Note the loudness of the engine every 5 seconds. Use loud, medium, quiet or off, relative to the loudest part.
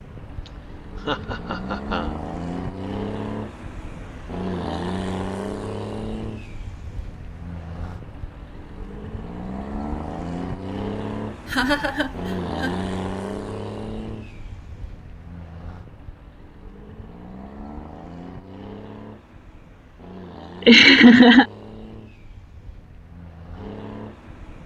loud, loud, loud, medium, medium.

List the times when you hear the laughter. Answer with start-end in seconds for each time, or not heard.
1.1-2.1, 11.4-12.8, 20.6-21.4.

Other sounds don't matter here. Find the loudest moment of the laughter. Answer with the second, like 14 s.
21 s.